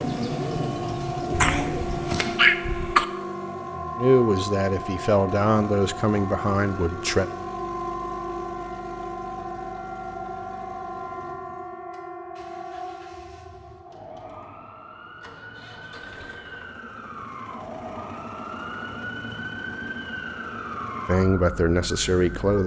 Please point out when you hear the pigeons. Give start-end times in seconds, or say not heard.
0.0-2.4.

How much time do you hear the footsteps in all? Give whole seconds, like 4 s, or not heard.
not heard.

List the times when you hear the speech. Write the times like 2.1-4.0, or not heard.
4.0-7.3, 21.1-22.6.